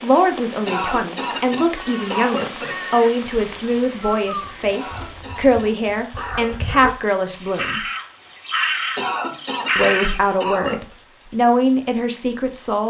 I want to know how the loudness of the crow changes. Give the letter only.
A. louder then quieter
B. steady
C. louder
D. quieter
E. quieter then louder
C.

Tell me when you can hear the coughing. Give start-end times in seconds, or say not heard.
0.7-2.8, 4.7-6.8, 8.9-10.9.